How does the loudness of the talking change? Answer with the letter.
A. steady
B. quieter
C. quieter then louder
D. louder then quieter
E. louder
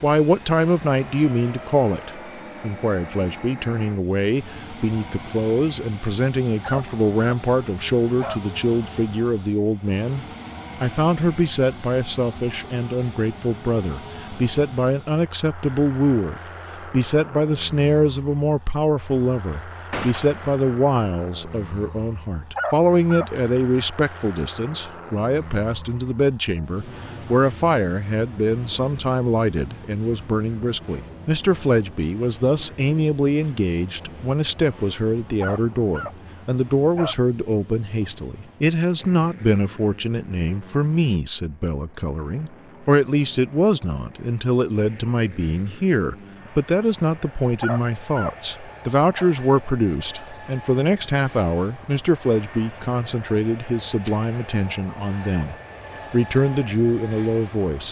A.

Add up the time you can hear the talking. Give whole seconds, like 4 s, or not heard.
58 s.